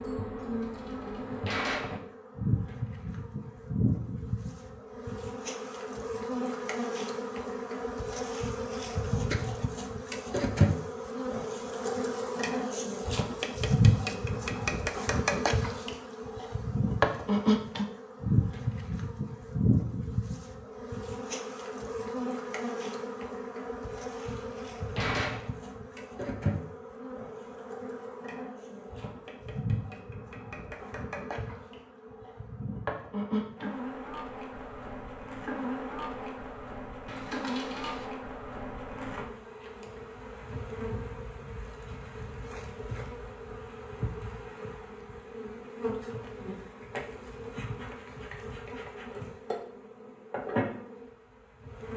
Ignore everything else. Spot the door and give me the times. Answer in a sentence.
The door can be heard from 0.6 to 2.0 s, from 24.2 to 25.5 s and from 37.0 to 38.0 s.